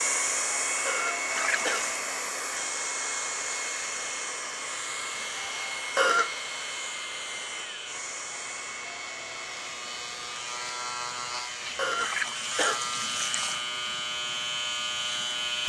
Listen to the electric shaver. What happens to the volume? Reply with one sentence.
The volume of the electric shaver goes up.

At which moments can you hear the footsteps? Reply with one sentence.
You can't hear the footsteps here.